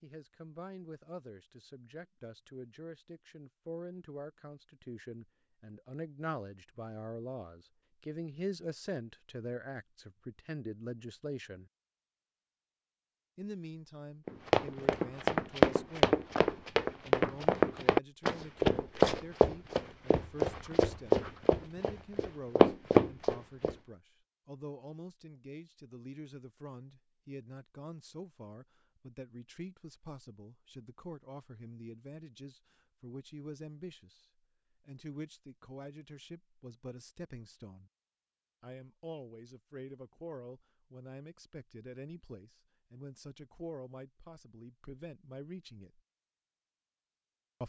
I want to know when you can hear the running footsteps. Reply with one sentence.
You can hear the running footsteps from 14.2 to 23.8 s.